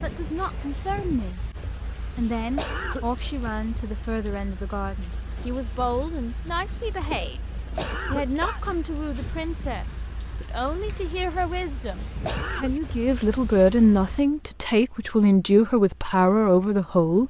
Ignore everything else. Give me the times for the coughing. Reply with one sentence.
You can hear the coughing from 2.4 to 3.0 s, from 7.5 to 8.6 s and from 12.1 to 12.7 s.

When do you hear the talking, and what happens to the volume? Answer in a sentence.
You can hear the talking briefly from 0.0 to 1.4 s; and from 2.1 to 17.2 s, getting louder.